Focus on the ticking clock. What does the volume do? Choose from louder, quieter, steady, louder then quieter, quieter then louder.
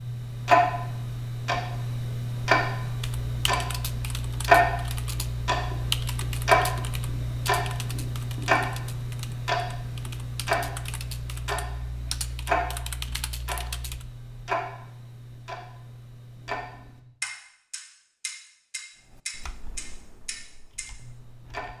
quieter.